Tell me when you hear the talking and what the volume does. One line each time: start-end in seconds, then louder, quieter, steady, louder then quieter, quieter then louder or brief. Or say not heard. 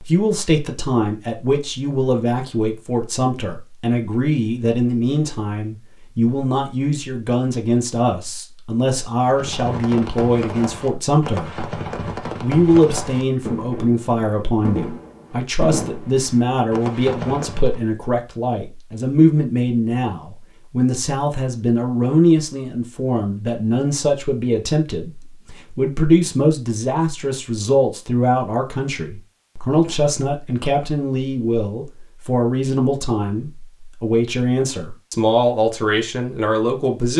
0.0-11.7 steady
12.4-37.1 steady.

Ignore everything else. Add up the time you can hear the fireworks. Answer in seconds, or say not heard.
9 s.